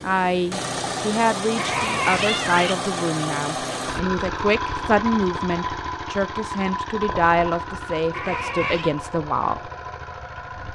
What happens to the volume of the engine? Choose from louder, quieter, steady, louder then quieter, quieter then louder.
quieter.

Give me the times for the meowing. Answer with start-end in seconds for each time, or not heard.
1.6-2.8, 8.1-8.9.